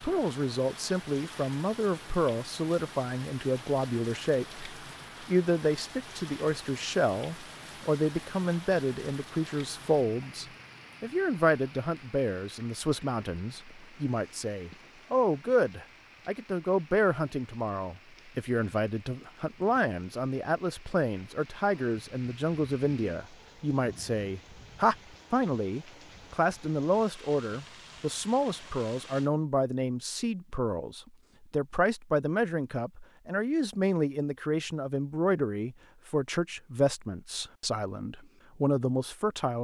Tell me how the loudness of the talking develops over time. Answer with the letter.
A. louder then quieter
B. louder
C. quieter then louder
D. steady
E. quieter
D.